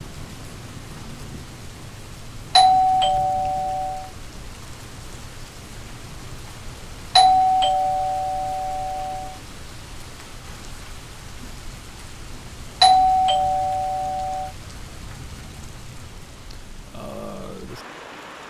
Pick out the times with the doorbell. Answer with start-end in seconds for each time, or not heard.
2.5-4.0, 7.2-9.3, 12.8-14.5.